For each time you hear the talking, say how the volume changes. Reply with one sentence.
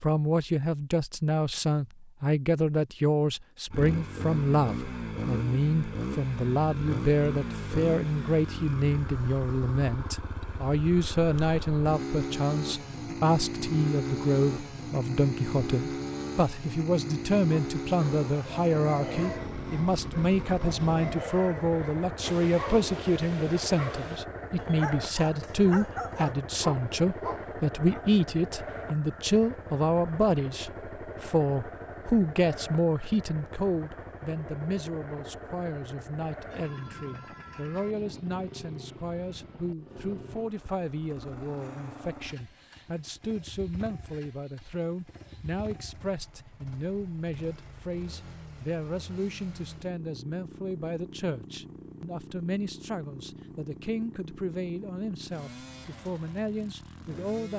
You can hear the talking from 0.0 to 57.5 s, getting quieter.